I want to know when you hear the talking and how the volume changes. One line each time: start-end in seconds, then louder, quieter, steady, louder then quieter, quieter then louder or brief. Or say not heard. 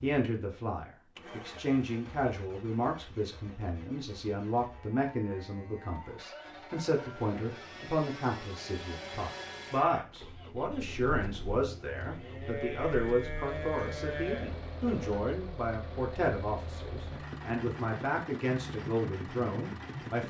0.0-20.2 steady.